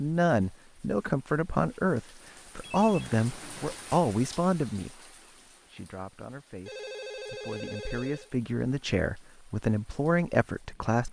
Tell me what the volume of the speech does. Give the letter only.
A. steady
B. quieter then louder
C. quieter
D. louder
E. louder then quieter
B.